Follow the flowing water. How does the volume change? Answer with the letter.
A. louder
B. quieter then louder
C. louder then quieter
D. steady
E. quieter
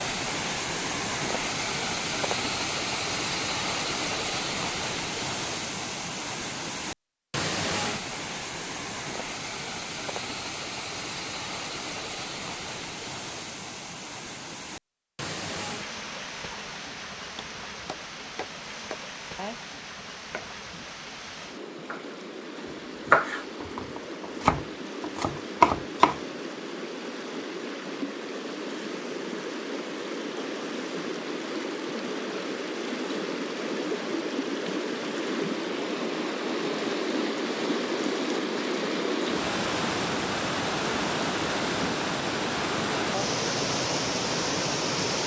B.